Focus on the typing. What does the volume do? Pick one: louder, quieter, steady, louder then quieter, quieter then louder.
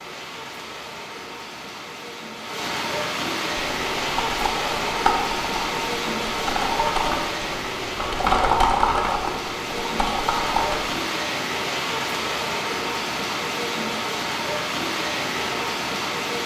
louder then quieter.